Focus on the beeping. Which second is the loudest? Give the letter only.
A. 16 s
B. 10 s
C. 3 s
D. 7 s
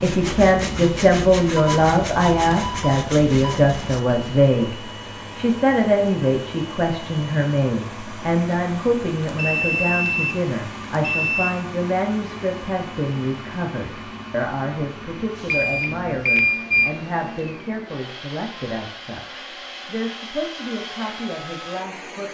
A.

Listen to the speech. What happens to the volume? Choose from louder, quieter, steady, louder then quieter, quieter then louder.
quieter.